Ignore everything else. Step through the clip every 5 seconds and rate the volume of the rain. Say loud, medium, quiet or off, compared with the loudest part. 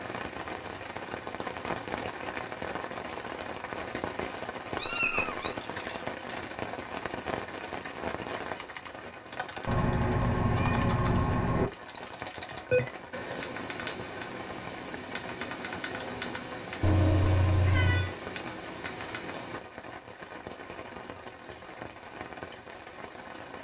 loud, loud, medium, medium, medium.